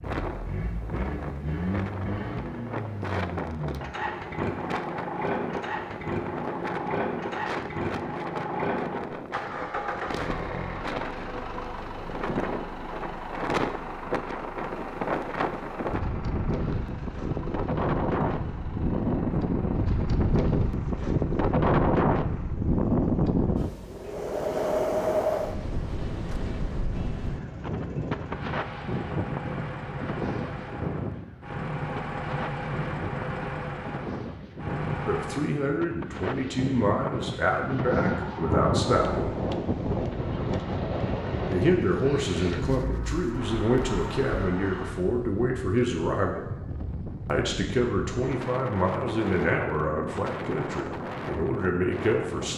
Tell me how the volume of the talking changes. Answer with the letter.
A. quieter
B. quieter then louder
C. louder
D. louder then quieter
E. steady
E.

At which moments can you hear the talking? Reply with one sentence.
You can hear the talking from 35.0 to 39.4 s, from 41.5 to 46.5 s and from 47.2 to 52.5 s.